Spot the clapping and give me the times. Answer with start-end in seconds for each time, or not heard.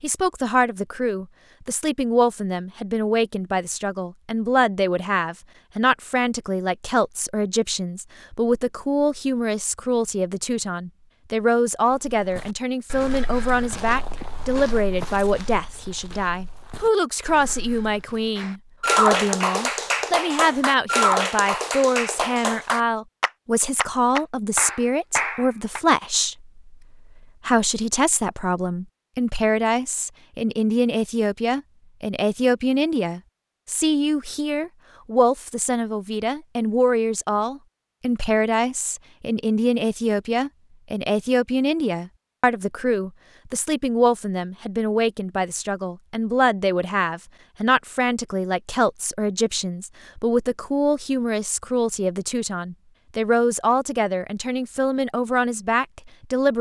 18.4-25.8.